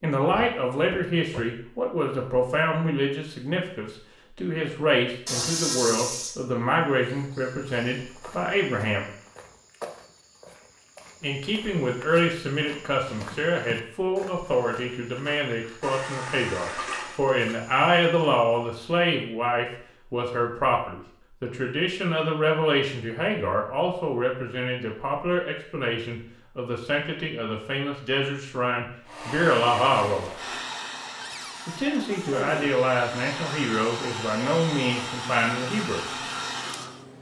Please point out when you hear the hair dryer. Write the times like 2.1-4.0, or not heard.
29.1-37.1.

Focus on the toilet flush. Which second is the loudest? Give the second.
6 s.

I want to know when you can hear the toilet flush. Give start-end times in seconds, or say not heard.
5.2-6.4, 15.8-17.2, 30.1-30.6.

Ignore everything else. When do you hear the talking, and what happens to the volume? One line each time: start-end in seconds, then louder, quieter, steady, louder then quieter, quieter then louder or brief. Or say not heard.
0.0-9.1 steady
11.2-30.3 steady
31.6-36.0 steady.